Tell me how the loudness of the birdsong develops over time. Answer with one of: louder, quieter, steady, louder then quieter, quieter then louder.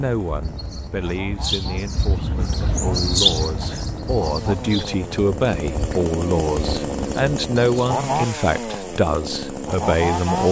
louder then quieter.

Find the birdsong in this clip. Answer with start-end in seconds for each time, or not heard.
0.0-7.9.